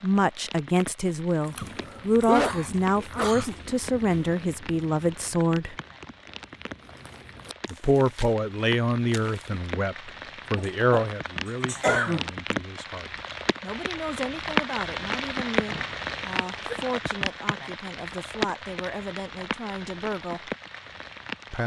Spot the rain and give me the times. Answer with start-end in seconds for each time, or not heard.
0.0-21.6.